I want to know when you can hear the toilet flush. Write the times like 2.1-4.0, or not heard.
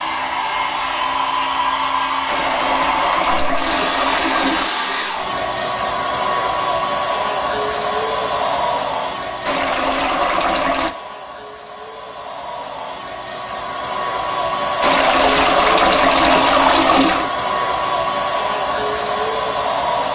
2.2-4.7, 9.4-10.9, 14.8-17.3.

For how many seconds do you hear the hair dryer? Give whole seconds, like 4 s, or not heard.
20 s.